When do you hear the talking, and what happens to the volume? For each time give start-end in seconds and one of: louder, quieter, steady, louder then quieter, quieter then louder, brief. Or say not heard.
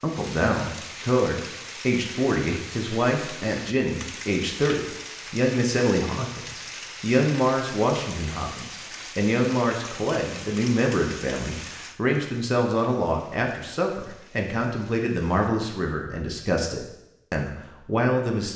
0.0-18.5 steady.